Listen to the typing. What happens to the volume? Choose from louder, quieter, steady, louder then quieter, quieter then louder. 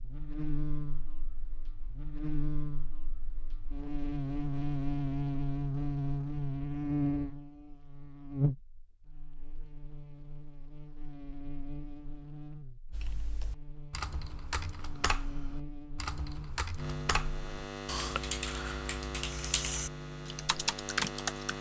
louder.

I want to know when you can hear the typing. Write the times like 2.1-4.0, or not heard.
12.9-21.5.